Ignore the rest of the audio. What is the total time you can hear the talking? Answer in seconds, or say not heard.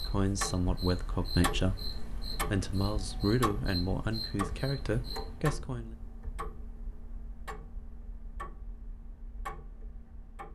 6 s.